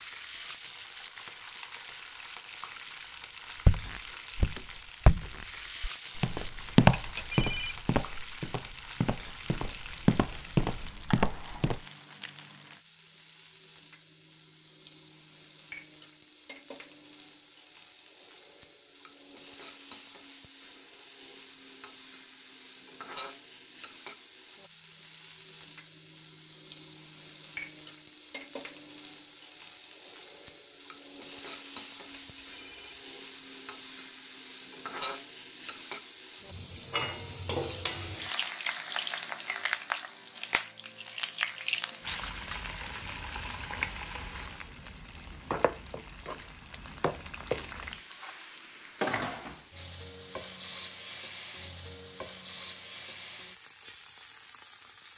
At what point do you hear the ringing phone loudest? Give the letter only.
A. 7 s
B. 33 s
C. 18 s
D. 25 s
A.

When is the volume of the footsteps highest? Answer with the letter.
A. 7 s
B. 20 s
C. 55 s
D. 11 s
A.